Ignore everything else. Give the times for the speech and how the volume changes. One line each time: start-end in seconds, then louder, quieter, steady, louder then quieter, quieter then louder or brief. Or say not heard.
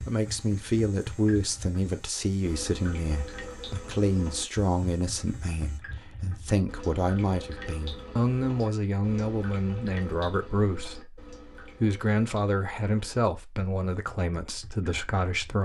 0.0-15.6 steady.